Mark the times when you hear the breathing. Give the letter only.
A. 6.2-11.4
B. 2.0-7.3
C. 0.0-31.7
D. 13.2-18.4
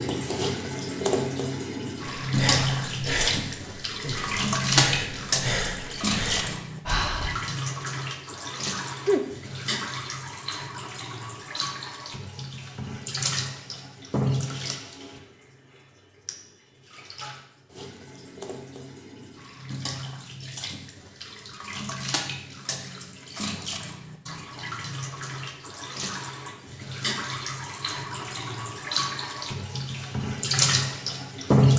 B.